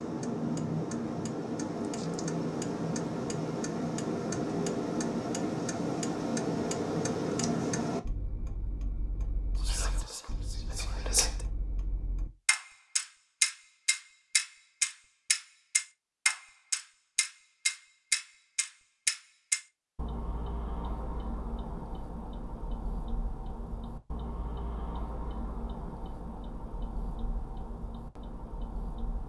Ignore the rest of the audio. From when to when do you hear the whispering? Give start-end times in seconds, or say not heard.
9.6-11.4.